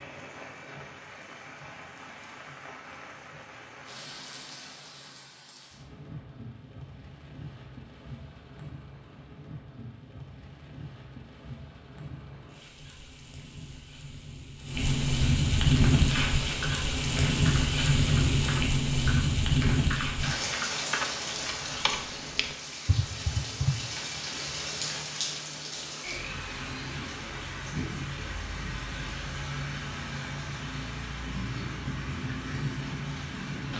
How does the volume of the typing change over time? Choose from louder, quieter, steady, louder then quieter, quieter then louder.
steady.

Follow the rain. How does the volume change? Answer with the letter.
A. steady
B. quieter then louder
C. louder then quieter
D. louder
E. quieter
C.